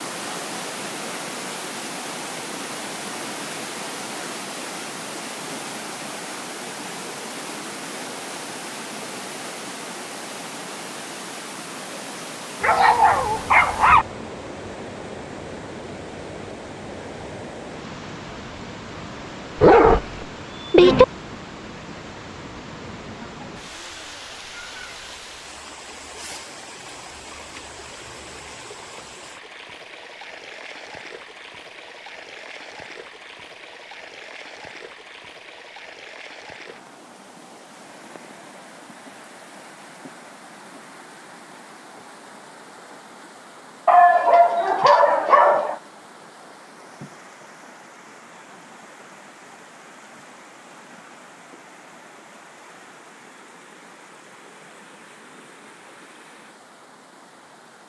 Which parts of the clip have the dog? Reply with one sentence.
The dog can be heard from 12.6 to 14.1 s, from 19.6 to 21.1 s and from 43.9 to 45.8 s.